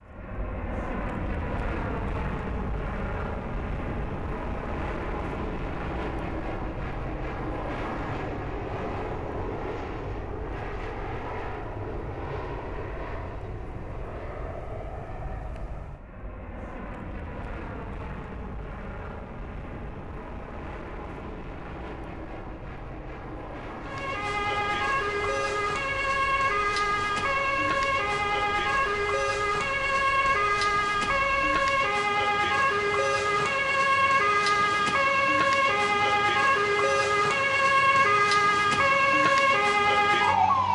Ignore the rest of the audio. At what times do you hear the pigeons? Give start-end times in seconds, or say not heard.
not heard.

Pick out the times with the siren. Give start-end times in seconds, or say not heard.
23.8-40.7.